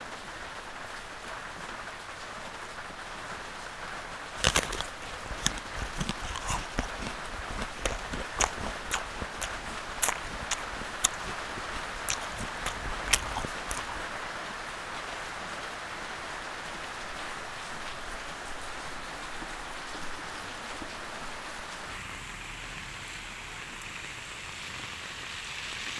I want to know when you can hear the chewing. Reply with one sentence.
The chewing can be heard from 4.3 to 14.1 s.